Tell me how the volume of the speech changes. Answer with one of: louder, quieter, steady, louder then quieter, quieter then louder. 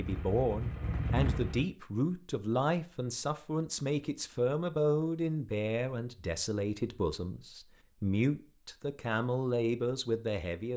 steady.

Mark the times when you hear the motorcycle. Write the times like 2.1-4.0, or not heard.
0.0-1.6.